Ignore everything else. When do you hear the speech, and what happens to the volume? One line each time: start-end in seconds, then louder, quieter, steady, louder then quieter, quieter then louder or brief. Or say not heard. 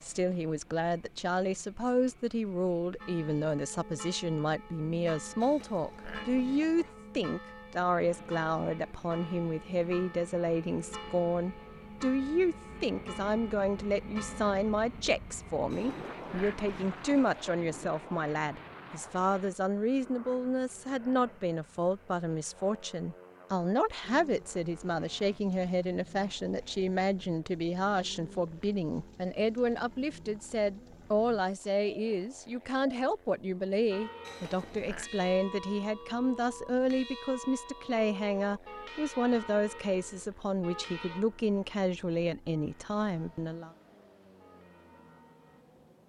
0.0-43.7 steady.